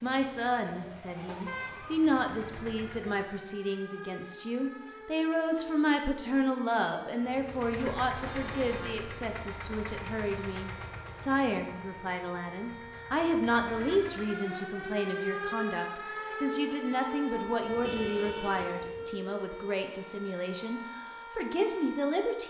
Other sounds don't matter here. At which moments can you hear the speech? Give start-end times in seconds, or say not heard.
0.0-22.4.